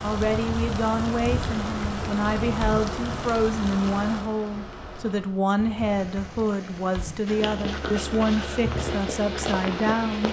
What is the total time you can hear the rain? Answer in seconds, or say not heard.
10 s.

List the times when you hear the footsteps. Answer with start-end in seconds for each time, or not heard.
7.2-10.2.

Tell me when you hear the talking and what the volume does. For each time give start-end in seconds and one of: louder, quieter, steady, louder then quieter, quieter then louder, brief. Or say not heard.
0.0-10.2 steady.